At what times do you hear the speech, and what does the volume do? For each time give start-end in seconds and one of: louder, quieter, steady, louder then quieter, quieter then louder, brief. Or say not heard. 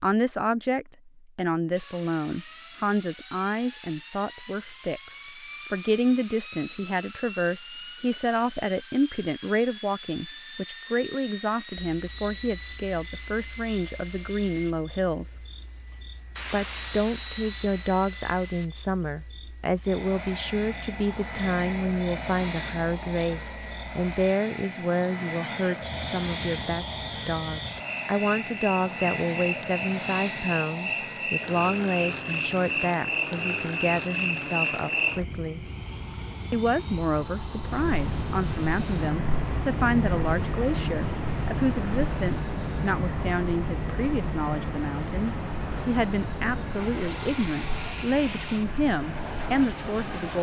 0.0-15.3 steady
16.5-35.6 steady
36.5-50.3 steady.